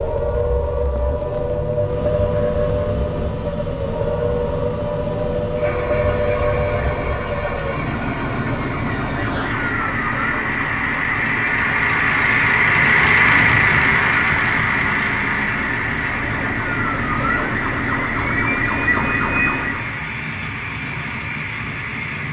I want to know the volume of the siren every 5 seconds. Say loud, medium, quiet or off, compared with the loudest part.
loud, loud, medium, loud, off.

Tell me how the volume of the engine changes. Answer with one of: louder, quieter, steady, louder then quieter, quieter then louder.
louder then quieter.